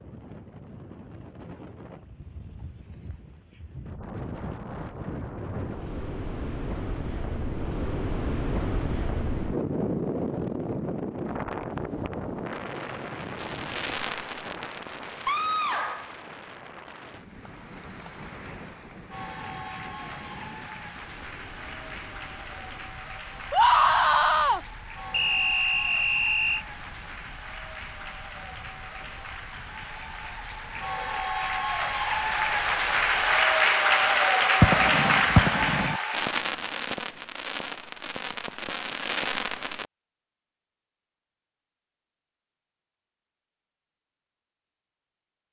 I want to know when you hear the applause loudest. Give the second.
34 s.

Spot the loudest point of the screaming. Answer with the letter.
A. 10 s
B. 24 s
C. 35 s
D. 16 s
B.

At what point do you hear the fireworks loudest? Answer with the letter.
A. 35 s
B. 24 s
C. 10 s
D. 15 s
A.